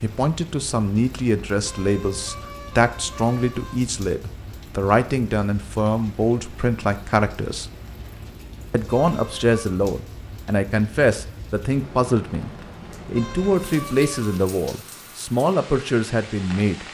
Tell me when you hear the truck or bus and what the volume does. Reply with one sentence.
You can't hear the truck or bus here.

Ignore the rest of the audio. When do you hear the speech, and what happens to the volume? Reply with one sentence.
You can hear the speech from 0.0 to 7.7 s, at a steady volume; and from 8.7 to 16.8 s, at a steady volume.